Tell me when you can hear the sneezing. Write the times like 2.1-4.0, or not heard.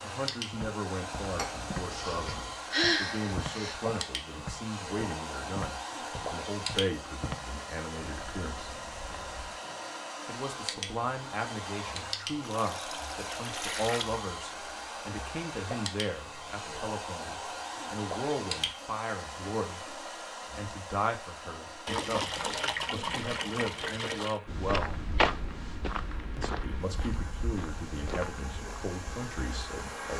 1.9-3.8.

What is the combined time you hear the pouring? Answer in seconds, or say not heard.
6 s.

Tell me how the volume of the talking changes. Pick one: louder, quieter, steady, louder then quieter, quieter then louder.
steady.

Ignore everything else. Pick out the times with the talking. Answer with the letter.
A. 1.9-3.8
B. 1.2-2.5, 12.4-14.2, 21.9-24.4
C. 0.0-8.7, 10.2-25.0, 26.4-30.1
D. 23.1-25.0
C.